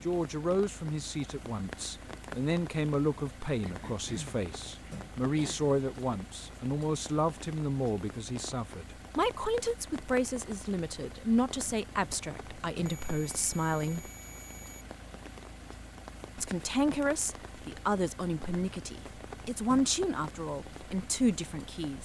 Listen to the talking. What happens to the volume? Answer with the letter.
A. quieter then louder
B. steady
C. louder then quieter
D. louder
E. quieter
B.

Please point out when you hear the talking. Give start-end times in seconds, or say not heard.
0.0-14.1, 16.4-22.0.